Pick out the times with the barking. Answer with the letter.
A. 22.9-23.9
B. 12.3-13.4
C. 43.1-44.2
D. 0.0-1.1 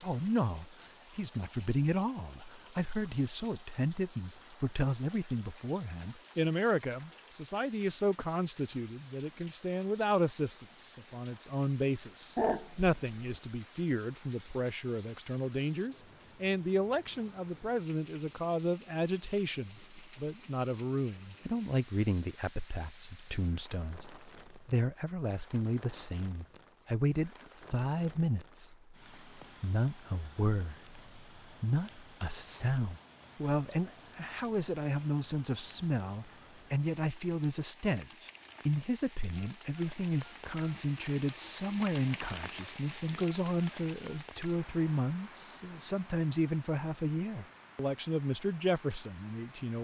B.